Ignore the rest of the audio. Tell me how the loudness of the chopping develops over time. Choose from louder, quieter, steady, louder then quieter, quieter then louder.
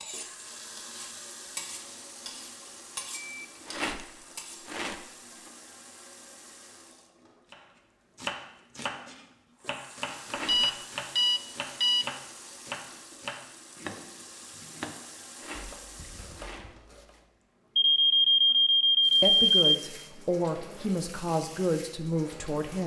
quieter.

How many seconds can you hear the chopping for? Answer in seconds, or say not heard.
10 s.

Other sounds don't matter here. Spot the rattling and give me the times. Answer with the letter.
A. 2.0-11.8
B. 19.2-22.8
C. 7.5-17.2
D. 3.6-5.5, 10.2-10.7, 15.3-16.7
D.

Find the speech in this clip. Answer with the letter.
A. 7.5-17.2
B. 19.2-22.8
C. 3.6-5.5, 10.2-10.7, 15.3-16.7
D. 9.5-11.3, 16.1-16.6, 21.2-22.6
B.